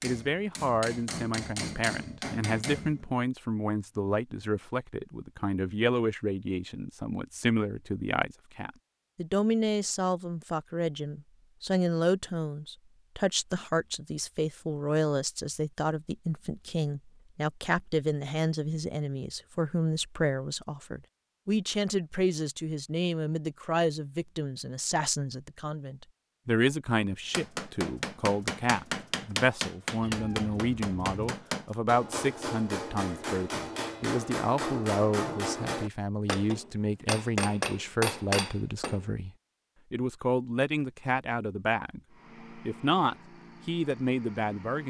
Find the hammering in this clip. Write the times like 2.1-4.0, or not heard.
0.0-3.0, 27.3-39.0.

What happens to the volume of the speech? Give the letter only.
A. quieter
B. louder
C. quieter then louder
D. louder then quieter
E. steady
E.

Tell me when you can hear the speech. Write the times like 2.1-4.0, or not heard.
0.0-39.3, 39.9-44.8.